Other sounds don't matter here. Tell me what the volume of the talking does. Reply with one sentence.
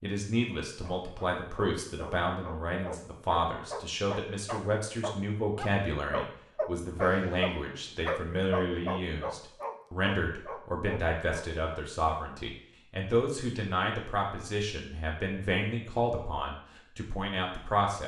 The loudness of the talking stays about the same.